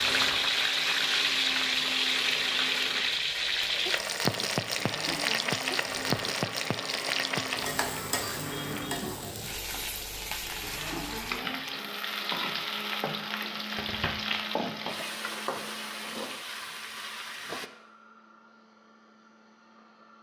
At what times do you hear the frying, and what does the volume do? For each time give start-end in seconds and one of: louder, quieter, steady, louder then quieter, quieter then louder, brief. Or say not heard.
0.0-17.7 quieter.